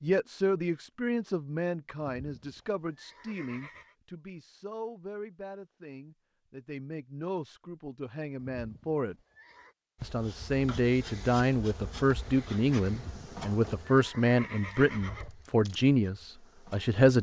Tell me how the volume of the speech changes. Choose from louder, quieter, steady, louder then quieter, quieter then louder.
quieter then louder.